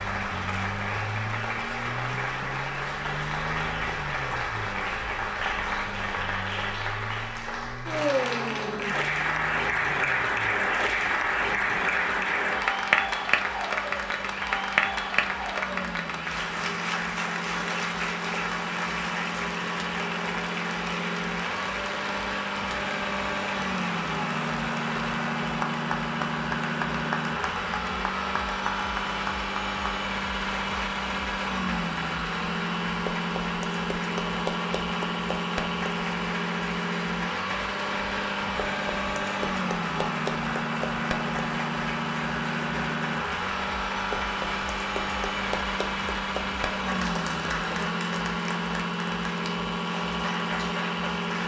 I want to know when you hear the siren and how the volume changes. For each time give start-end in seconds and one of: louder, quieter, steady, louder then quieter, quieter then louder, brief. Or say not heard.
not heard.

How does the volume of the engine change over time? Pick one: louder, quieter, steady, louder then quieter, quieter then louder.
louder.